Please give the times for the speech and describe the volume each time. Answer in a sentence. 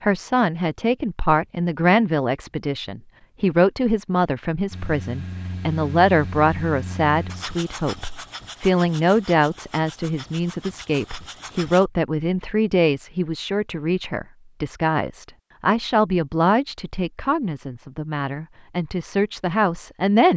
You can hear the speech from 0.0 to 20.3 s, at a steady volume.